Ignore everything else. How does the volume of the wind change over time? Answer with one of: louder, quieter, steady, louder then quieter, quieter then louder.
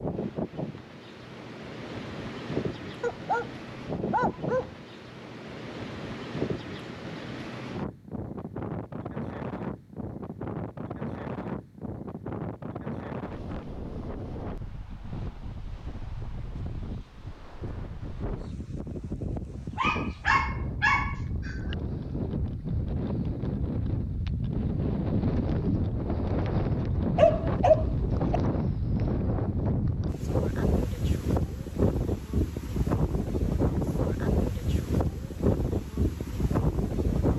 louder.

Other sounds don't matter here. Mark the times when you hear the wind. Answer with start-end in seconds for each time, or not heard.
0.0-37.3.